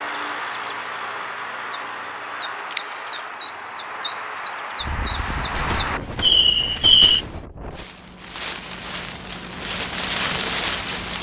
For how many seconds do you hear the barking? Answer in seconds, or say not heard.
not heard.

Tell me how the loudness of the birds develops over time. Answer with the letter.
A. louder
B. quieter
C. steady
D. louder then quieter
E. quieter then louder
A.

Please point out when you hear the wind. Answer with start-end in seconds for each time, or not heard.
4.8-11.1.